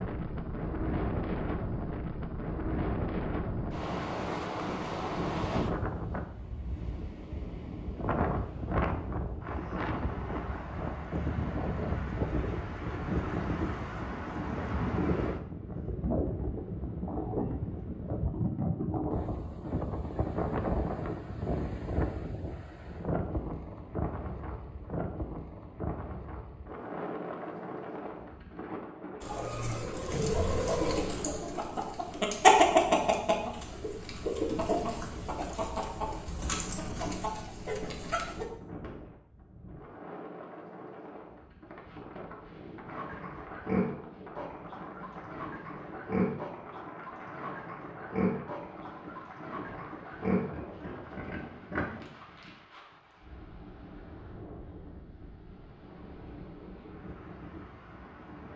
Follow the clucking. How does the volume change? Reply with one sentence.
The loudness of the clucking goes up, then down.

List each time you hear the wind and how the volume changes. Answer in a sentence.
You can hear the wind from 0.0 to 58.5 s, getting quieter.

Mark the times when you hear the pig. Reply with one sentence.
The pig can be heard from 42.9 to 52.0 s.